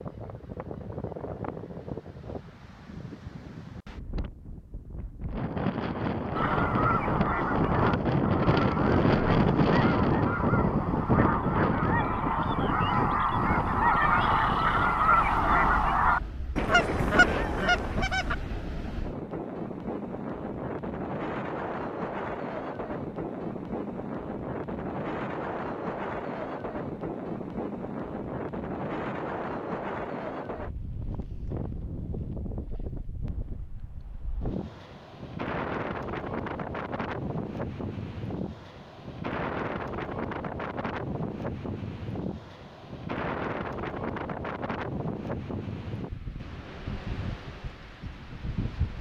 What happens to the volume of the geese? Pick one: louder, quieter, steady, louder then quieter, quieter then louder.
louder.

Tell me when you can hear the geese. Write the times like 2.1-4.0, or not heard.
6.3-18.4.